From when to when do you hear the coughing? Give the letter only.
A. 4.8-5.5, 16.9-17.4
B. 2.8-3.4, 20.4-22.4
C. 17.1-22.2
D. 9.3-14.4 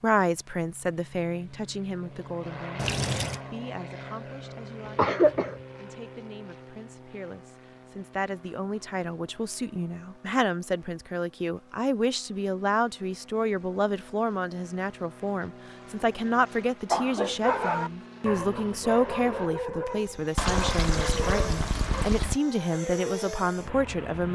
A.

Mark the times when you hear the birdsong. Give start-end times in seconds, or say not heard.
not heard.